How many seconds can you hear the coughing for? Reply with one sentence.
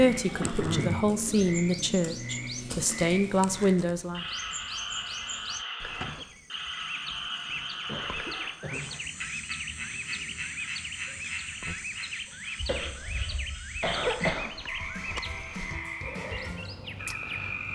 You can hear the coughing for 4 seconds altogether.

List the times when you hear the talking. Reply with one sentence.
The talking can be heard from 0.0 to 4.2 s.